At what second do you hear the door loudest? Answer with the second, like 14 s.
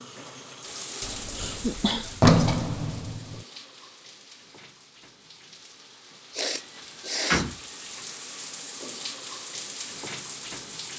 2 s.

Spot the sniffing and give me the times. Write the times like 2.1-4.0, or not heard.
0.7-2.2, 6.3-7.5.